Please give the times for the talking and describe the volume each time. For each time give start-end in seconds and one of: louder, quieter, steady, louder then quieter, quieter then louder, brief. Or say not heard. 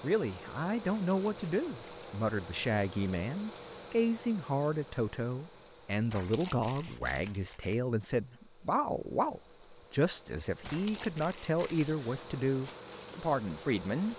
0.0-14.1 steady.